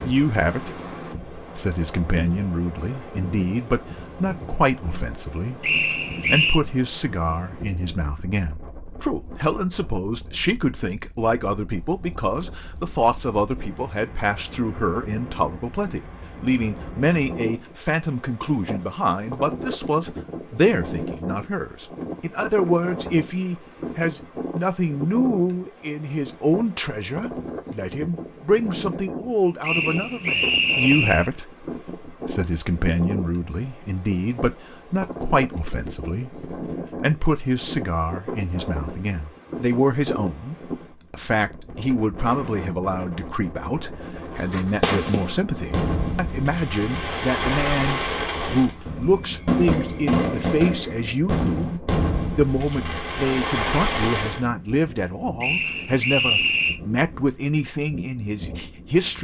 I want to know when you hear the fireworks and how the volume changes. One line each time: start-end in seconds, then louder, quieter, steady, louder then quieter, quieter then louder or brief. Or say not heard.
44.3-54.5 steady.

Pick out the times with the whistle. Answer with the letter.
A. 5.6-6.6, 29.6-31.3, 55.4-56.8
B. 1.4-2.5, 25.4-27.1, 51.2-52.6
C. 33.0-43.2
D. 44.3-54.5
A.